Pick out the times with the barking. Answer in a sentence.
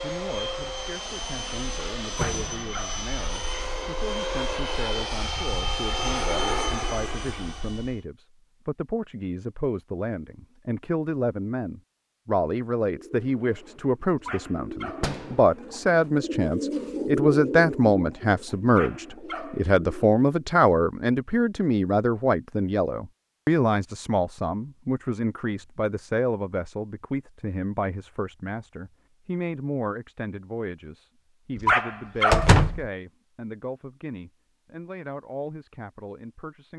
You can hear the barking from 2.0 to 3.0 s, from 14.2 to 15.2 s, from 18.6 to 19.6 s and from 31.6 to 32.5 s.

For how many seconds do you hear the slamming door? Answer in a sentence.
The slamming door can be heard for 2 seconds in total.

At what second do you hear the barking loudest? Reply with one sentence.
The loudest moment of the barking is at 32 seconds.